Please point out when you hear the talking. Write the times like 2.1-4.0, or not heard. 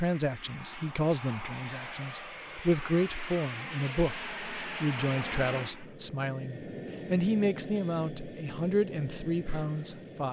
0.0-10.2.